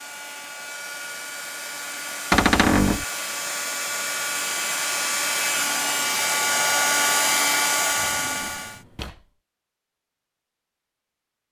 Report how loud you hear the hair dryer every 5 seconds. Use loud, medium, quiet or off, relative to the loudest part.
medium, loud, off.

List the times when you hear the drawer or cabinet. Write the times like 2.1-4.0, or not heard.
2.3-3.0, 7.9-9.2.